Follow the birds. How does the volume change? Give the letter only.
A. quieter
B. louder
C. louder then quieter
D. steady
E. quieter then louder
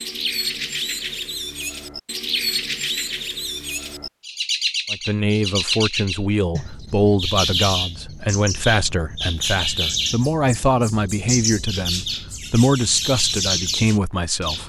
D.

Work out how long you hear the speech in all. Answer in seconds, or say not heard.
10 s.